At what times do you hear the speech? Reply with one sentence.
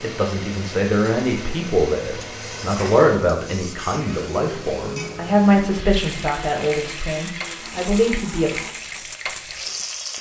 The speech can be heard from 0.0 to 8.6 s.